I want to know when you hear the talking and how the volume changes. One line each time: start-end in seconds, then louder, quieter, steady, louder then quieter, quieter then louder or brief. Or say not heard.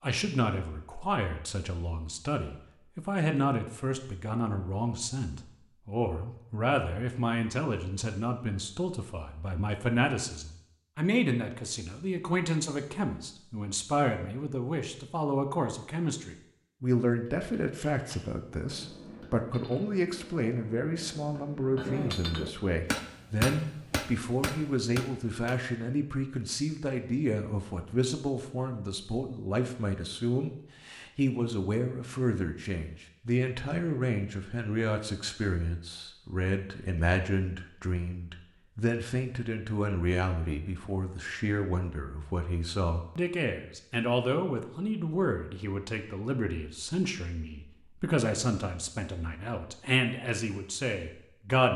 0.0-51.7 steady.